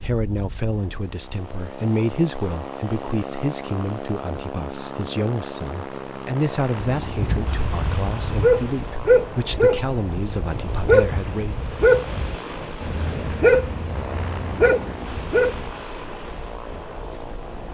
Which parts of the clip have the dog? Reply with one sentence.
You can hear the dog from 7.0 to 15.7 s.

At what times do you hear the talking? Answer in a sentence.
The talking can be heard from 0.0 to 11.6 s.